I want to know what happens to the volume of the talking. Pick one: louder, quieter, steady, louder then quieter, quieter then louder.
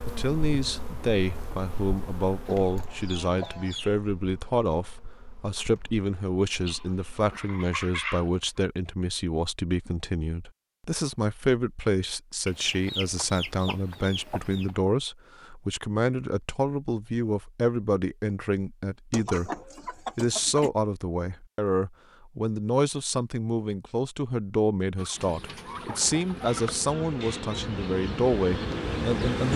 steady.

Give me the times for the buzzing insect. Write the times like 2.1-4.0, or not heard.
0.0-7.3, 25.1-29.5.